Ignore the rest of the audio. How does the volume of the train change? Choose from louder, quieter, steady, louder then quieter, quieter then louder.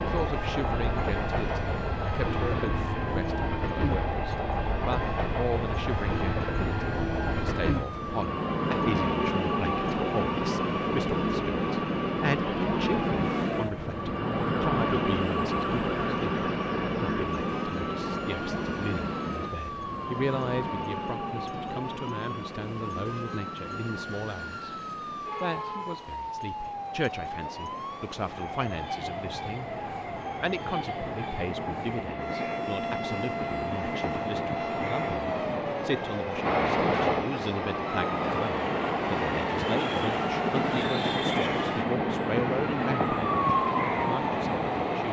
quieter then louder.